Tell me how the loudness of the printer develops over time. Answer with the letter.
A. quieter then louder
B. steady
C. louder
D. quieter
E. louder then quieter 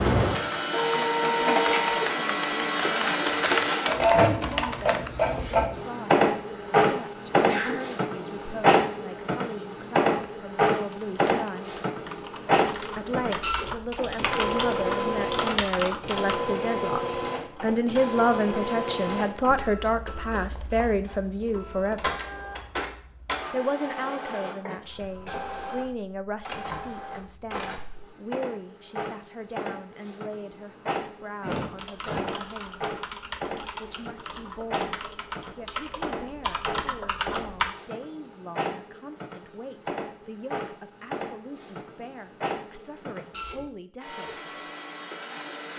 D.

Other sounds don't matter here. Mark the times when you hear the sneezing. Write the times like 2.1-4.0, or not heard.
7.3-7.8, 31.4-32.5.